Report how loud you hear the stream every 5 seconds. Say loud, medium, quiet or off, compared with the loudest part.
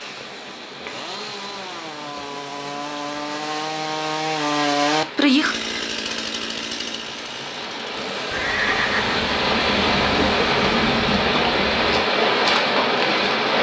quiet, medium, loud.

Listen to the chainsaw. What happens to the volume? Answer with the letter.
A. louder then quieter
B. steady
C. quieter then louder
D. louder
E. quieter
A.